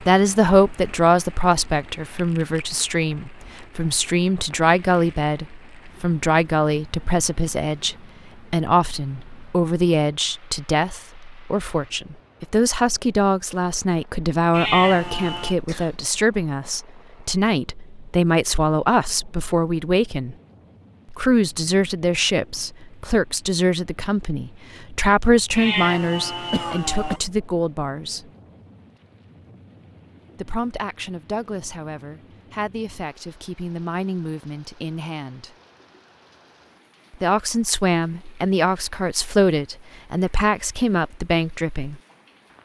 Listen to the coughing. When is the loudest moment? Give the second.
27 s.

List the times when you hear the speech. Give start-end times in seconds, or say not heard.
0.0-20.4, 21.1-28.2, 30.4-35.5, 37.1-42.0.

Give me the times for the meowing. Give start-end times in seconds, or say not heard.
14.5-15.6, 25.6-27.2.